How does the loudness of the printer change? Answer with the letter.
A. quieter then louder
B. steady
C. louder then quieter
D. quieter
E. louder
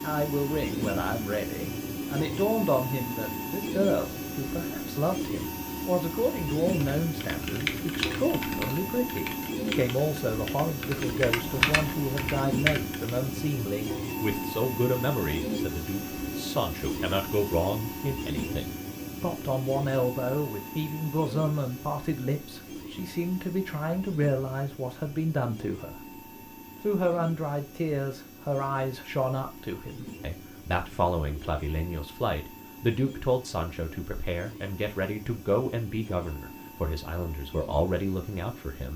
D.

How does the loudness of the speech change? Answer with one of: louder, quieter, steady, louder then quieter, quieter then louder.
steady.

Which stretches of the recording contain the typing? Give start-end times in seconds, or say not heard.
6.7-13.3.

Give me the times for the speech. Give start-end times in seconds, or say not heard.
0.0-26.0, 26.8-38.9.